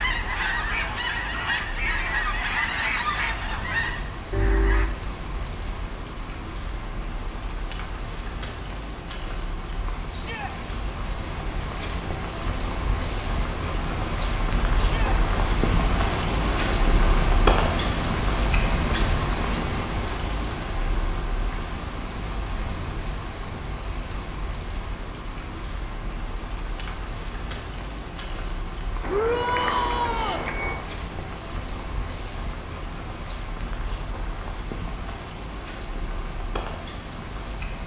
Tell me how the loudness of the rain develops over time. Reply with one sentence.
The volume of the rain goes up, then down.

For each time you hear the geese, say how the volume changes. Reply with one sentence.
The geese can be heard from 0.0 to 4.9 s, at a steady volume.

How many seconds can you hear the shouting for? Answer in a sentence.
The shouting can be heard for 2 seconds in total.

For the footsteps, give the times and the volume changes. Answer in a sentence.
The footsteps can't be heard in this clip.